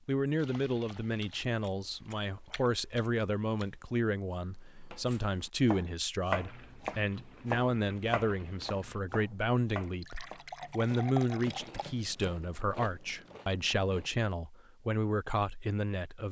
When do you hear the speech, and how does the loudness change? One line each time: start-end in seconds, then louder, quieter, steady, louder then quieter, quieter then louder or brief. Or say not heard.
0.1-16.2 steady.